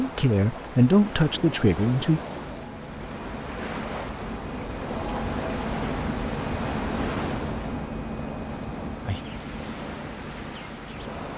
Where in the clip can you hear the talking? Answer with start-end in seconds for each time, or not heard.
0.0-2.2.